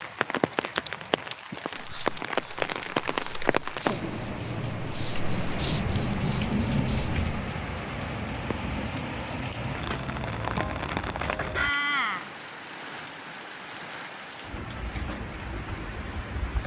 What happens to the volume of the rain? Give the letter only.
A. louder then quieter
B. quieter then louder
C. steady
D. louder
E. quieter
E.